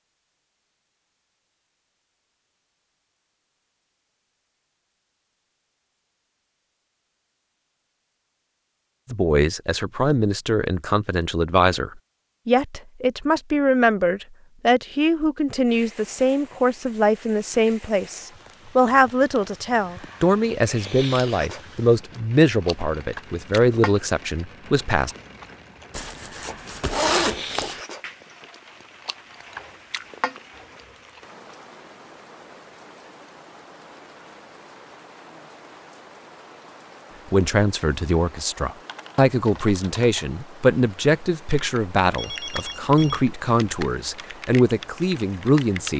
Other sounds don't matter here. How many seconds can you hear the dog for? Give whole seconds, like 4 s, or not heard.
not heard.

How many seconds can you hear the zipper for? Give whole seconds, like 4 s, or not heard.
2 s.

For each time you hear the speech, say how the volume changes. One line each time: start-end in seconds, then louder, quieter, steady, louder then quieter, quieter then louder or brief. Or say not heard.
9.1-25.1 steady
37.3-45.9 steady.